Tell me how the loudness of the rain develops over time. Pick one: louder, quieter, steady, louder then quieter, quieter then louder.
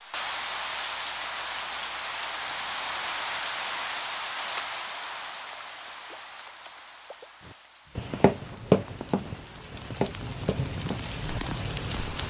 quieter then louder.